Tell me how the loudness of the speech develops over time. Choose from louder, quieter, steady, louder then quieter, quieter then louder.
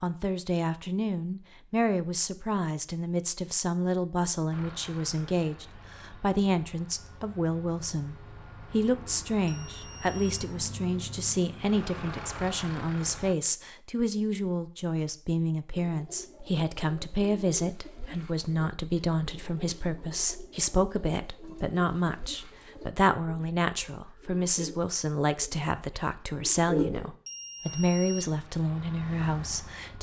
steady.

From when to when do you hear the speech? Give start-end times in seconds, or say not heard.
0.0-29.9.